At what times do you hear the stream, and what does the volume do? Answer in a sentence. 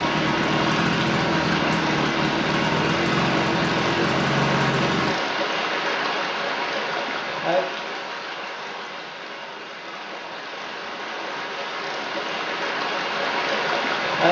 The stream can be heard from 0.0 to 14.2 s, getting quieter then louder.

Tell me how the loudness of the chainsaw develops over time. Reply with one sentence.
The loudness of the chainsaw stays about the same.